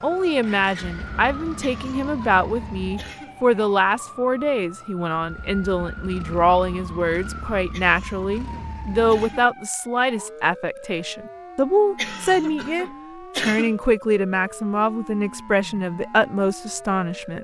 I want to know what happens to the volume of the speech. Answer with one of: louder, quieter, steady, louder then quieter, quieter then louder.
steady.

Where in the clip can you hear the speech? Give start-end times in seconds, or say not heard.
0.0-17.3.